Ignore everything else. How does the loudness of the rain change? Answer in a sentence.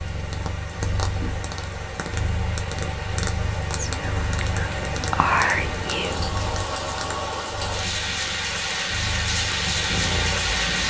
The volume of the rain goes up.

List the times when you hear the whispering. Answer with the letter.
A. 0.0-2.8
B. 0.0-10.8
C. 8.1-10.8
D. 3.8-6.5
D.